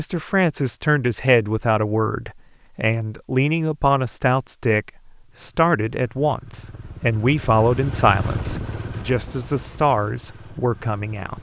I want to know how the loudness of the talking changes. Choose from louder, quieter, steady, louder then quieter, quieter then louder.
steady.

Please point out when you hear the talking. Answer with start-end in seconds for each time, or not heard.
0.0-11.3.